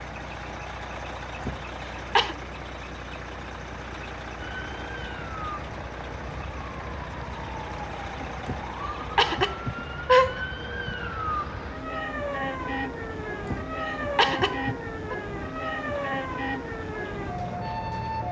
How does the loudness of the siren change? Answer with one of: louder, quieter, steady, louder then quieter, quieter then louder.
louder.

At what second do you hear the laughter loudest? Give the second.
10 s.